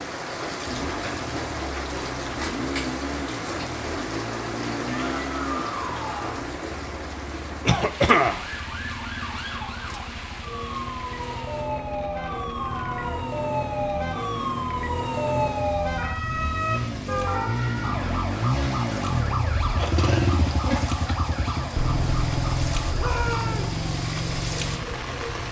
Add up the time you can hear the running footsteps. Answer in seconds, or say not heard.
not heard.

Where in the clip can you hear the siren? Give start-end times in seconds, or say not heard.
8.4-25.4.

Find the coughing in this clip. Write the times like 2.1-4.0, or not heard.
7.7-8.4.